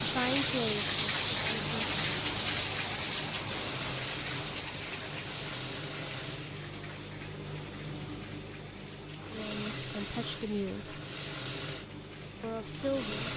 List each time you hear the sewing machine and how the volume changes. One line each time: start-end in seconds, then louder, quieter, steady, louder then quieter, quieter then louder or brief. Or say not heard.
0.0-13.3 steady.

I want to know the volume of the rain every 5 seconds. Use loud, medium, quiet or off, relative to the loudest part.
loud, quiet, quiet.